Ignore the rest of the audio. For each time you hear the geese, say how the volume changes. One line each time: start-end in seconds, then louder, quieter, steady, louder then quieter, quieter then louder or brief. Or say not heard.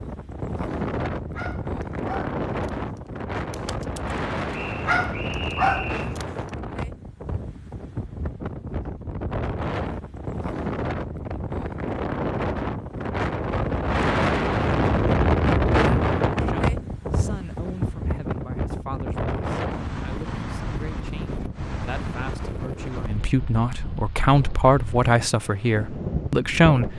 not heard.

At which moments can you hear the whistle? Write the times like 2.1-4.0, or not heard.
4.5-6.2.